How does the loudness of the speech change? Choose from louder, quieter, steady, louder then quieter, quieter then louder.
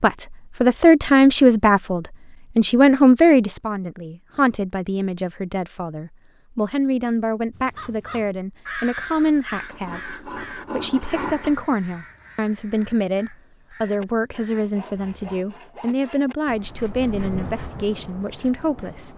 quieter.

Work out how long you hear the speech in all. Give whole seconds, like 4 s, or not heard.
19 s.